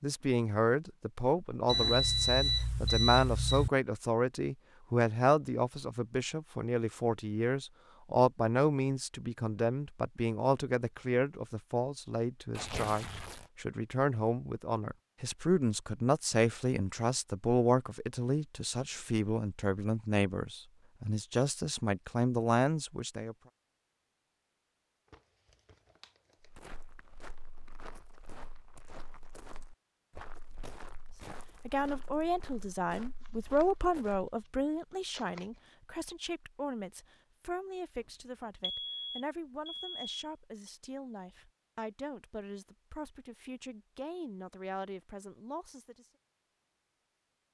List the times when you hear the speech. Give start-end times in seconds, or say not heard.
0.0-23.4, 31.6-46.0.